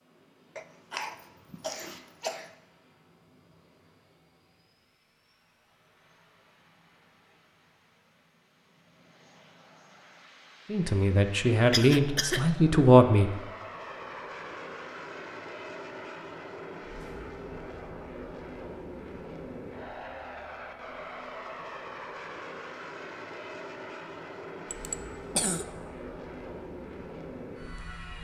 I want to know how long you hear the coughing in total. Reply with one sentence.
The coughing can be heard for 4 seconds in total.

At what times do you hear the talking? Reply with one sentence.
The talking can be heard from 10.7 to 13.3 s.